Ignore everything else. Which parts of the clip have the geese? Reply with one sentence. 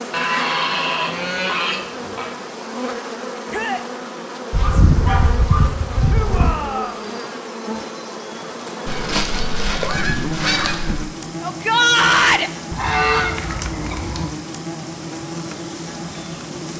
The geese can be heard from 0.1 to 2.4 s, from 4.5 to 6.5 s, from 8.8 to 11.1 s and from 12.7 to 14.3 s.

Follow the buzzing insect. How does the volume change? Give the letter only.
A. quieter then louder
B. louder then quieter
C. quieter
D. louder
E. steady
E.